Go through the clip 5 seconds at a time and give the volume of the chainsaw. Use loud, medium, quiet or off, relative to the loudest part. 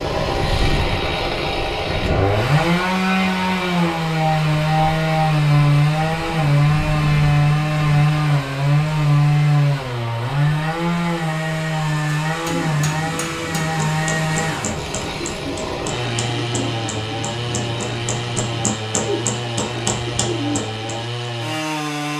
loud, loud, medium, medium, medium.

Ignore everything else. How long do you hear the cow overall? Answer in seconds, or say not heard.
not heard.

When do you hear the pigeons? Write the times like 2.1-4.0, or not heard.
12.4-21.1.